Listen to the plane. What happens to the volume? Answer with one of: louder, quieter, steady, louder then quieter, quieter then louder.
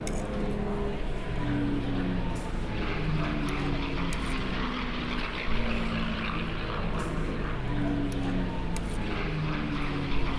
steady.